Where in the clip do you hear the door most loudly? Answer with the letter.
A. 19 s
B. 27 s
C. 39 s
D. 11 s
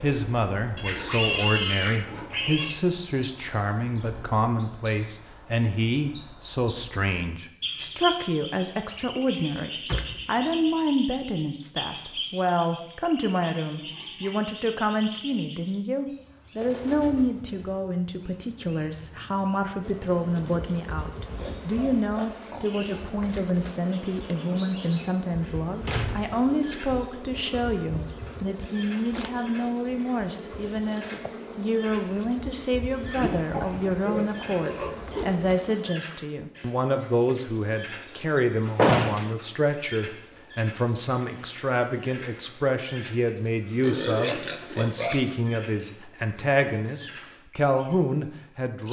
C.